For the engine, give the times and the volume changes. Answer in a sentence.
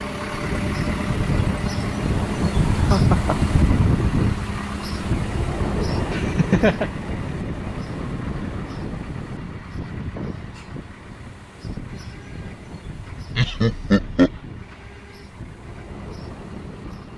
The engine can be heard from 0.0 to 17.1 s, getting quieter.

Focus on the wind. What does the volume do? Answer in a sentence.
The loudness of the wind goes down.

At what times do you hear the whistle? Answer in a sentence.
You can't hear the whistle here.